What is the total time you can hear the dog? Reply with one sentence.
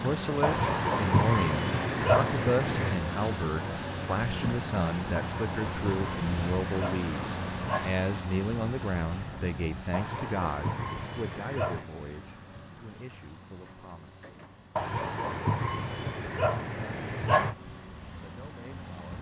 The dog can be heard for 10 seconds in total.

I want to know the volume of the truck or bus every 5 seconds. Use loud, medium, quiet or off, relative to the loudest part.
loud, loud, quiet, medium.